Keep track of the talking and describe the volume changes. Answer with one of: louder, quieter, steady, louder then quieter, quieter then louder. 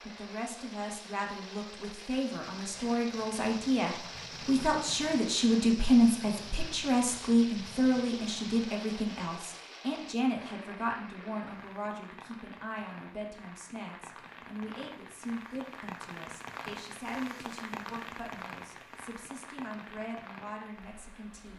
louder then quieter.